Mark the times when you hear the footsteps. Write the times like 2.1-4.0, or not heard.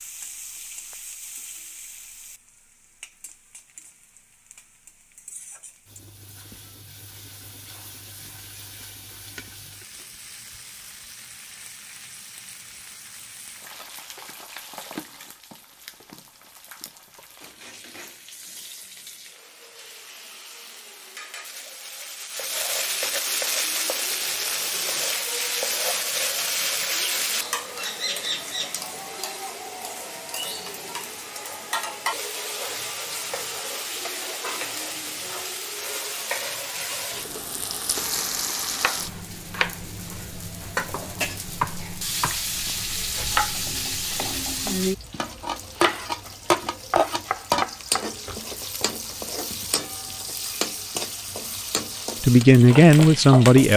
not heard.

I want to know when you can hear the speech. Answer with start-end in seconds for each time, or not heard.
52.2-53.7.